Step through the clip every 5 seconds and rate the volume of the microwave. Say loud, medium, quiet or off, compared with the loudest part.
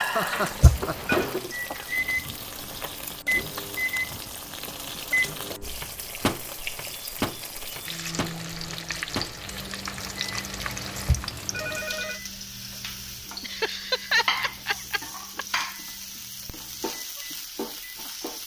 loud, loud, quiet, quiet.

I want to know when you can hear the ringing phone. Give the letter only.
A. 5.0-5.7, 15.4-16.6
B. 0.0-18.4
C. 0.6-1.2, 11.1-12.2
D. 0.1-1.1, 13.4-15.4
C.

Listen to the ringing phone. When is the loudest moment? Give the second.
1 s.